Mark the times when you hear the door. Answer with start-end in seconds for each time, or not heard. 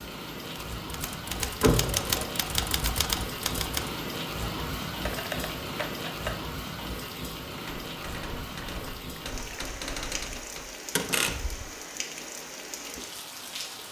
1.6-2.1, 10.9-11.7.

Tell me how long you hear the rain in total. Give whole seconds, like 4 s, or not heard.
14 s.